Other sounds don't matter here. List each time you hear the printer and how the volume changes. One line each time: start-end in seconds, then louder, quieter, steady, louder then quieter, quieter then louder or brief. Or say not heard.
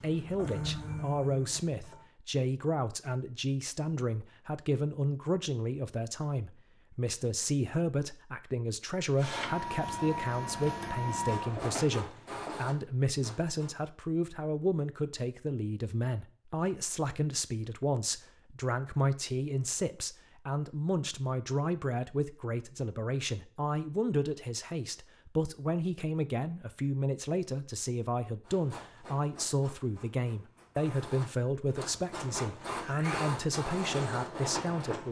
0.0-2.1 brief
9.2-13.8 quieter
28.4-35.0 louder.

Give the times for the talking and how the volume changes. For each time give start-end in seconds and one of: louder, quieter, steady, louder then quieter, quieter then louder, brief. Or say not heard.
0.0-35.0 steady.